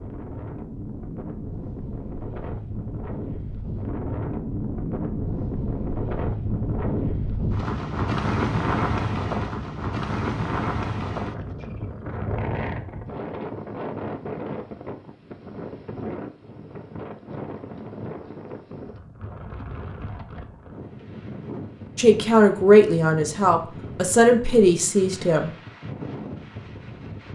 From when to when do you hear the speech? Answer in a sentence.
The speech can be heard from 21.9 to 25.5 s.